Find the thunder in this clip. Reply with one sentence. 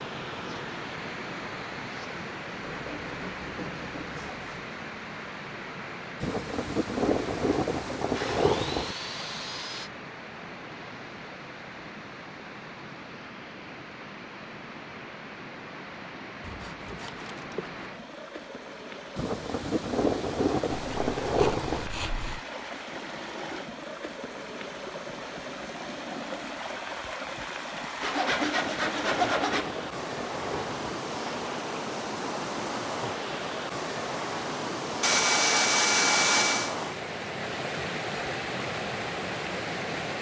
The thunder can be heard from 6.2 to 8.9 s, from 19.1 to 21.9 s and from 28.2 to 30.8 s.